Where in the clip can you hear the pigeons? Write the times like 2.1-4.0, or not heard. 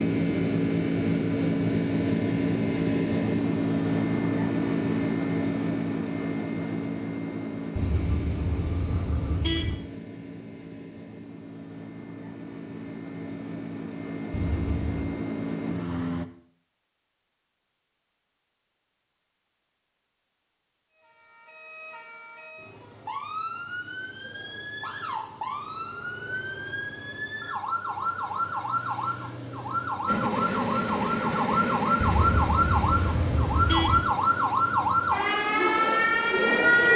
not heard.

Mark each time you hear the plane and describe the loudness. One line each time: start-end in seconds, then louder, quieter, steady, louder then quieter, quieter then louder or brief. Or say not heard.
0.0-16.2 quieter then louder
30.1-36.9 quieter.